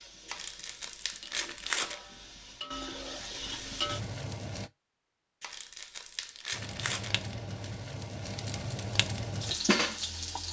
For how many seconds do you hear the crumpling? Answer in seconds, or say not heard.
4 s.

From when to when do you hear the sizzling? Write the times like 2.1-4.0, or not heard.
0.0-4.7, 6.5-10.4.